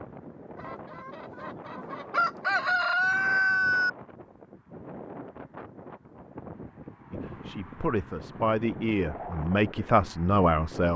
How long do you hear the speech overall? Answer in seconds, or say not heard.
4 s.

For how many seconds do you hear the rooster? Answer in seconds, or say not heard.
3 s.